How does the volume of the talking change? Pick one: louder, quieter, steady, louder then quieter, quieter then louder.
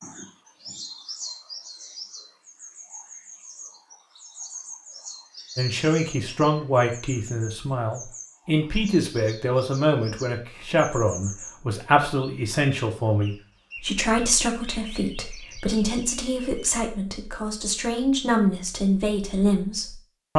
steady.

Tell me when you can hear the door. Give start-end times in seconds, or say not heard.
not heard.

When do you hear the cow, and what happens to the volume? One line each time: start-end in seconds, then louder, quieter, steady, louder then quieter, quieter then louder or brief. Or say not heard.
not heard.